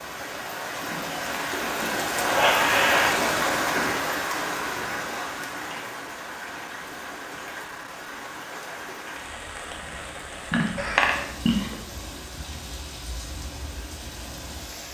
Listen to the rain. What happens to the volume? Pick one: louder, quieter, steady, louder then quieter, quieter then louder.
quieter.